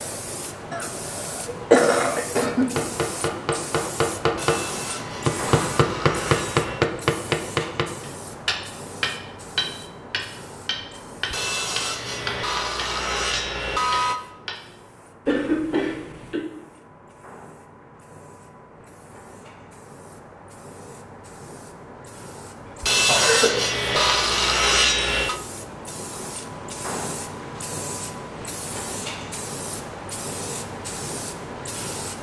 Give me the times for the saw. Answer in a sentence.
The saw can be heard from 4.3 to 6.9 s, from 11.3 to 14.2 s and from 22.8 to 25.4 s.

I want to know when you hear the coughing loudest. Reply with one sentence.
The volume of the coughing peaks at 2 seconds.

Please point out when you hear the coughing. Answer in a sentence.
You can hear the coughing from 0.7 to 2.7 s, from 15.2 to 16.4 s and from 23.1 to 24.1 s.